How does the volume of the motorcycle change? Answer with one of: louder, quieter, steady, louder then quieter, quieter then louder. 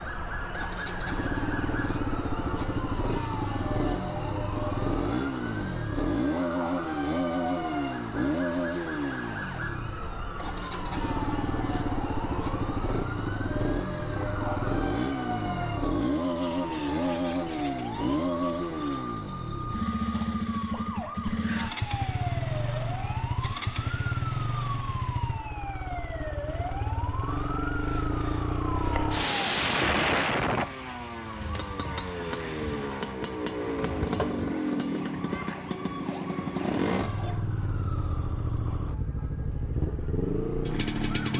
steady.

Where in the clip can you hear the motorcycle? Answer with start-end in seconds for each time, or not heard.
0.0-41.3.